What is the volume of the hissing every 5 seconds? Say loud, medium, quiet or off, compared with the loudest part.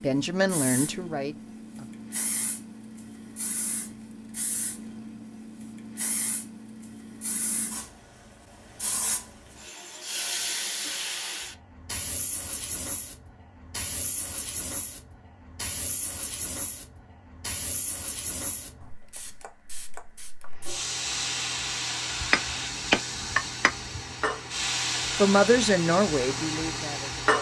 medium, medium, medium, medium, loud, loud.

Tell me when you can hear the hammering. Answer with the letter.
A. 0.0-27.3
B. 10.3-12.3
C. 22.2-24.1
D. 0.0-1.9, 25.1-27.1
C.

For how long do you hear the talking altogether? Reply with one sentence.
You can hear the talking for 4 seconds altogether.